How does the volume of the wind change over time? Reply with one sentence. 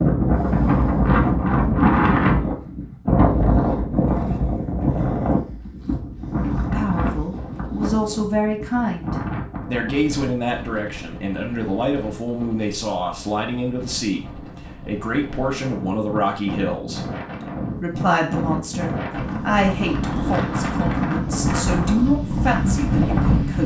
The volume of the wind goes down, then up.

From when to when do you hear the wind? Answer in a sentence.
You can hear the wind from 0.0 to 23.6 s.